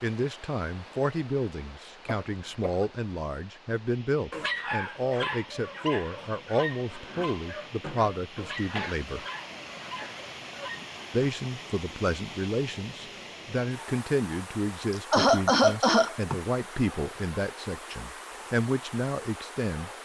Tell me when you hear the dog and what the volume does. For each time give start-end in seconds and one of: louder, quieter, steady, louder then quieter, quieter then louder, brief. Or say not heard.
4.3-11.3 quieter.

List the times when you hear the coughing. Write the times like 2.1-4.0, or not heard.
2.0-2.9, 8.8-10.2, 14.9-16.4.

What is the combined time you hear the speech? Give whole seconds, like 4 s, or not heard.
18 s.